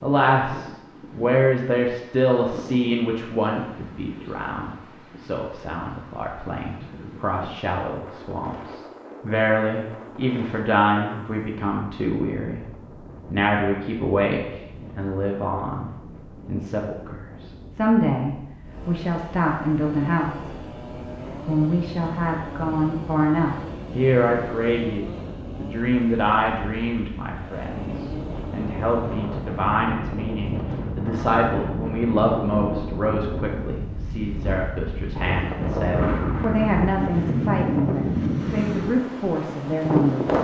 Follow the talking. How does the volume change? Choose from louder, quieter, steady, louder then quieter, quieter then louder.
steady.